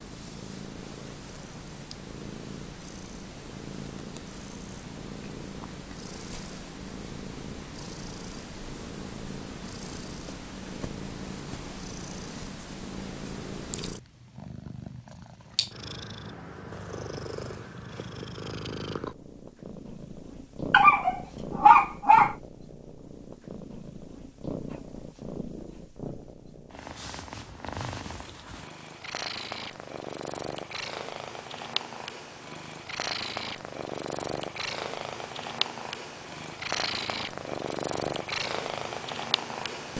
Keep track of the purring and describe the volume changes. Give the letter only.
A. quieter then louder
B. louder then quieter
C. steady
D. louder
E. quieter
D.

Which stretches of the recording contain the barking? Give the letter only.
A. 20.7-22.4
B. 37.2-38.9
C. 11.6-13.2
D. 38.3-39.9
A.